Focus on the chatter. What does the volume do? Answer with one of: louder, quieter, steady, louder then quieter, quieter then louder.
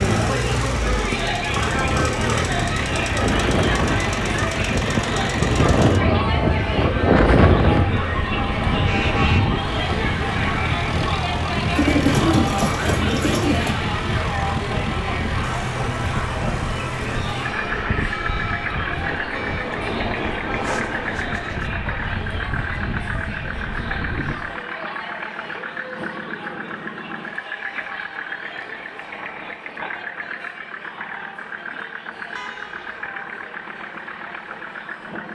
quieter.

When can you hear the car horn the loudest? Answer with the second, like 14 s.
9 s.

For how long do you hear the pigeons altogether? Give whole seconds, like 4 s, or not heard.
2 s.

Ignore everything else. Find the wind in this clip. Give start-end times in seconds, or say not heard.
0.0-24.6.